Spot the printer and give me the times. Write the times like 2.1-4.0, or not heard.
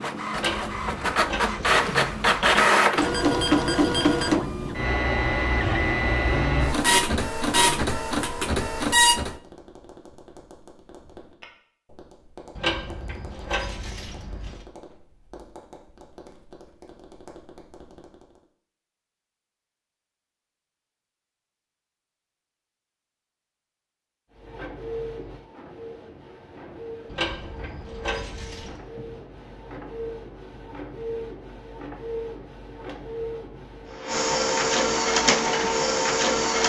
0.0-9.3, 24.3-36.6.